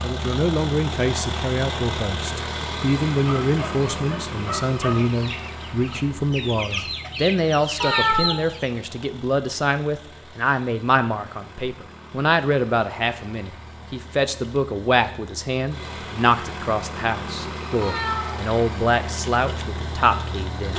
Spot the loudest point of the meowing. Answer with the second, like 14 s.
8 s.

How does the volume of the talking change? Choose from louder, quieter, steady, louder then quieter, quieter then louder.
steady.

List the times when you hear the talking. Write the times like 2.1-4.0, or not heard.
0.0-20.7.